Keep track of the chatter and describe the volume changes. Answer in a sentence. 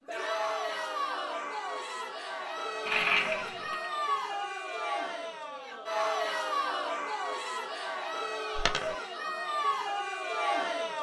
The loudness of the chatter stays about the same.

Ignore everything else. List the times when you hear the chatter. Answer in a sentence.
The chatter can be heard from 0.1 to 10.9 s.